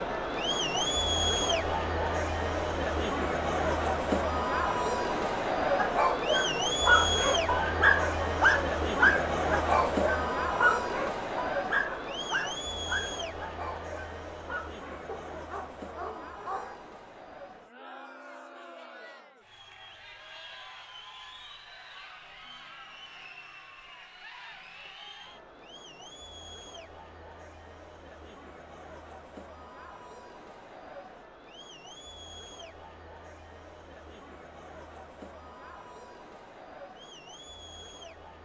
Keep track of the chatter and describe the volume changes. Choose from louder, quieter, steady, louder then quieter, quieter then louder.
quieter.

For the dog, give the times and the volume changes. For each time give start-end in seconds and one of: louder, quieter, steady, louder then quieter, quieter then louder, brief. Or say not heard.
5.7-16.9 quieter.